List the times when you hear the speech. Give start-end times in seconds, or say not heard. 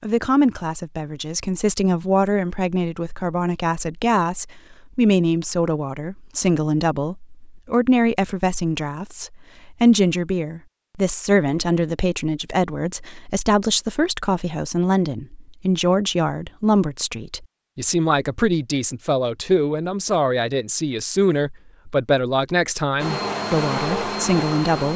0.0-24.9.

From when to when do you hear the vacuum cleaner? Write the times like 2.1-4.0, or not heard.
22.9-24.9.